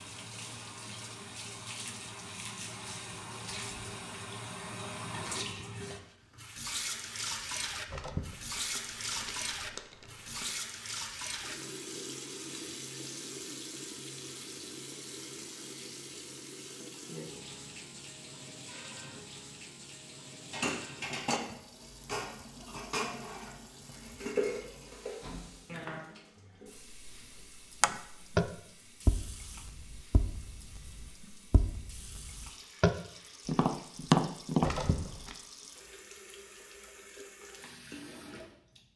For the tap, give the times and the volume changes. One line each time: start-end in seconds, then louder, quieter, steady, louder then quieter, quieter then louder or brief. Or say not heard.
0.0-38.9 quieter.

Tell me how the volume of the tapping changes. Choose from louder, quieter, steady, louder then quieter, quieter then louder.
quieter then louder.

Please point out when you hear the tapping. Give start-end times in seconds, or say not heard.
27.8-34.7.